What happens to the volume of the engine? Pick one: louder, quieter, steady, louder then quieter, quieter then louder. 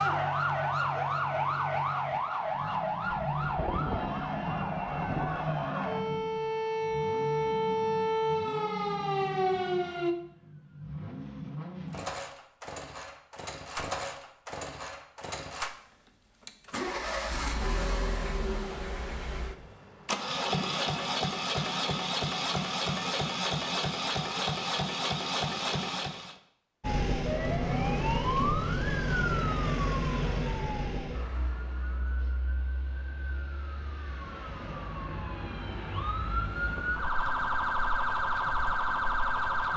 louder.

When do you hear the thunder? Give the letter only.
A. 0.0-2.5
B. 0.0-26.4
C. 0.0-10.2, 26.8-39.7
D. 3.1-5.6
D.